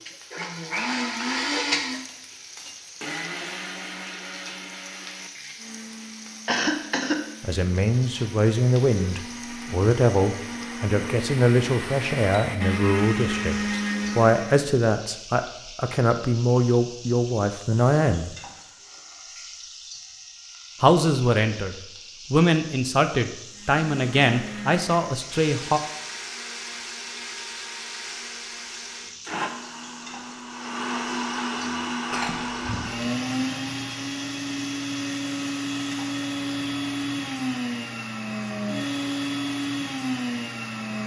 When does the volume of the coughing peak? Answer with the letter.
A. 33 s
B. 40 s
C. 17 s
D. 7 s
D.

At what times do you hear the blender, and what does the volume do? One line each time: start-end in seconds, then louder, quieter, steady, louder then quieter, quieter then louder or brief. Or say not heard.
0.0-14.7 quieter then louder
23.5-41.0 louder.